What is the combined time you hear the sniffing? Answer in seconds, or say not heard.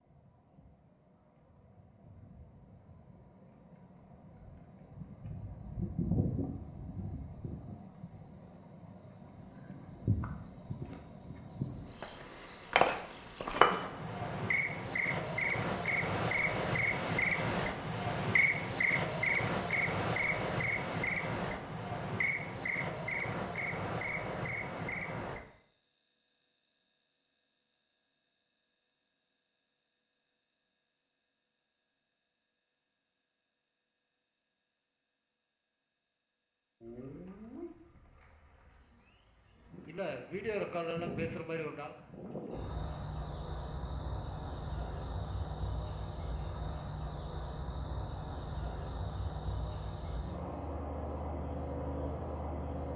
2 s.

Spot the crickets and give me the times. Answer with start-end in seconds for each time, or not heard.
0.0-52.9.